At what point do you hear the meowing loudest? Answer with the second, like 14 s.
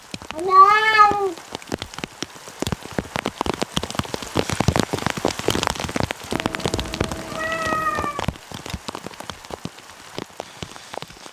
1 s.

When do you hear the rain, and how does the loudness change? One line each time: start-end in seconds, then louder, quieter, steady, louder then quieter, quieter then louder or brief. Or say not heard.
0.0-11.2 louder then quieter.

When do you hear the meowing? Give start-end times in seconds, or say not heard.
0.3-1.4, 6.3-8.2.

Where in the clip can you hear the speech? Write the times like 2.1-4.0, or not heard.
not heard.